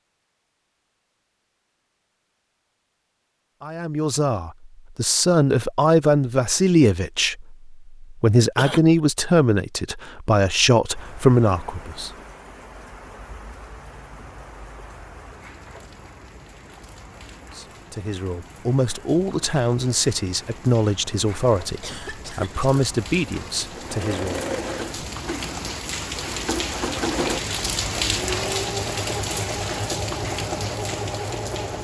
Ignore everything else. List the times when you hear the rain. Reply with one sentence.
You can hear the rain from 10.9 to 31.7 s.